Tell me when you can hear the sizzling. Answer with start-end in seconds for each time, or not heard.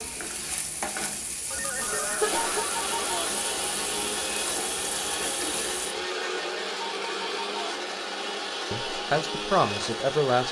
0.0-6.0.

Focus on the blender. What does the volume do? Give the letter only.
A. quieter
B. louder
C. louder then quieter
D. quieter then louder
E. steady
E.